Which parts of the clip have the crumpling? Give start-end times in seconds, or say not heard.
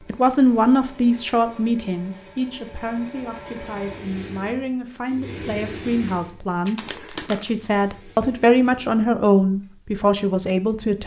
6.7-7.5.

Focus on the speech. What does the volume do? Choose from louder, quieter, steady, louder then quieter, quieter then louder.
quieter then louder.